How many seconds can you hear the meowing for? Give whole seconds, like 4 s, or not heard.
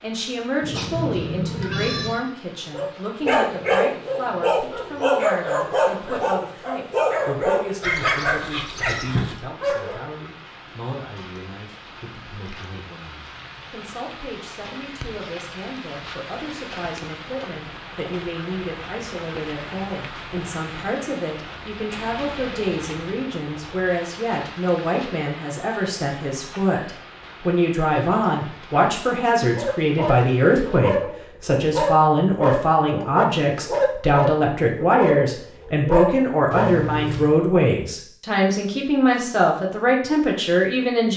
2 s.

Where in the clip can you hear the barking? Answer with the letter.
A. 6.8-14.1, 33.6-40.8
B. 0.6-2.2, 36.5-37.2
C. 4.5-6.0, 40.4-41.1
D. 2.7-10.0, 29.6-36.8
D.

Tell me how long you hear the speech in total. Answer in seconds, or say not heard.
41 s.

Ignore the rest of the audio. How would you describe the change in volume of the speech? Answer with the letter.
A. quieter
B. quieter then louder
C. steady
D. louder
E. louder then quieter
B.